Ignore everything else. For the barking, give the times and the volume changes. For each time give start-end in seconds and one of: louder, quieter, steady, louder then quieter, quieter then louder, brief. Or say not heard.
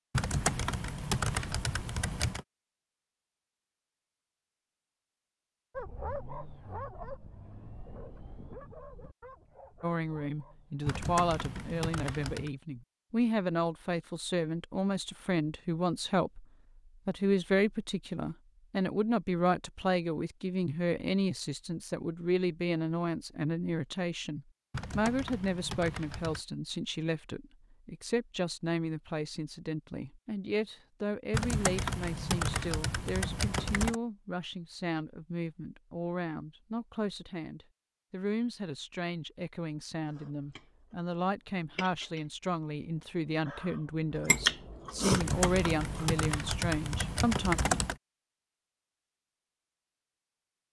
5.8-10.9 quieter.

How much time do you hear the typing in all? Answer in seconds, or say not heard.
11 s.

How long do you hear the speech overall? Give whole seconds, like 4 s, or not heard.
37 s.